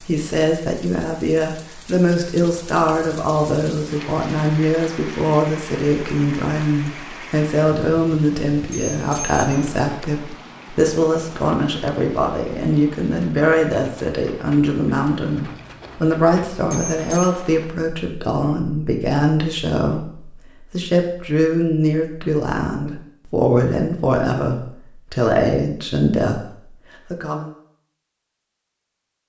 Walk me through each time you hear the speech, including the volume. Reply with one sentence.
You can hear the speech from 0.0 to 27.5 s, at a steady volume.